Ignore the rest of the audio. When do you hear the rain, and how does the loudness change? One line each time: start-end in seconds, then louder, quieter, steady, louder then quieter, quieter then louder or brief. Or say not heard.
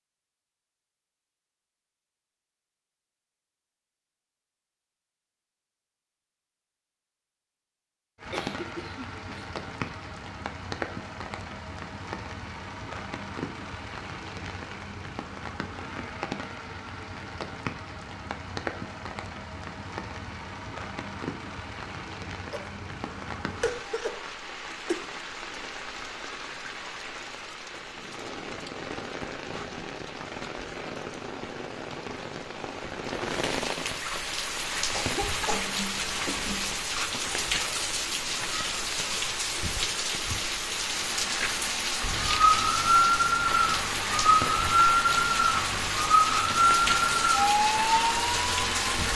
8.2-49.1 louder.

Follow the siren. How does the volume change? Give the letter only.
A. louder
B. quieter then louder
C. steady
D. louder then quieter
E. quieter
C.